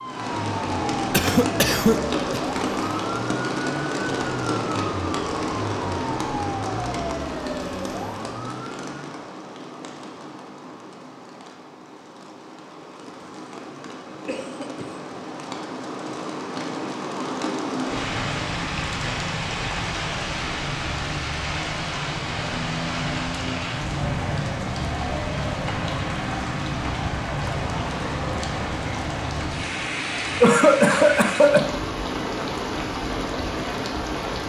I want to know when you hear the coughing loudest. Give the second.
31 s.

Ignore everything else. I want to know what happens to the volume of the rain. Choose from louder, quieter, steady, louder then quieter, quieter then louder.
quieter then louder.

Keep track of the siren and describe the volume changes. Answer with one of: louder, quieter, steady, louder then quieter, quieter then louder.
steady.